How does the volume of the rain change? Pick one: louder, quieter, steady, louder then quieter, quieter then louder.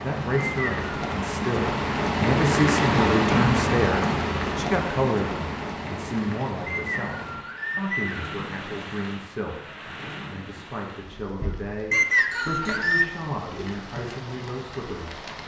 quieter.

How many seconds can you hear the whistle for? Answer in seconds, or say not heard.
3 s.